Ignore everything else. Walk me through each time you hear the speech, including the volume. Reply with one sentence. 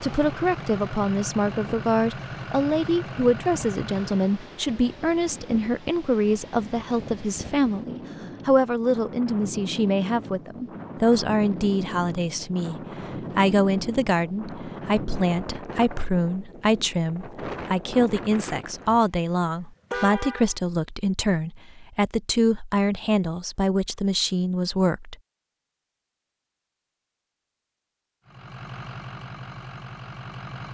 You can hear the speech from 0.0 to 25.1 s, at a steady volume.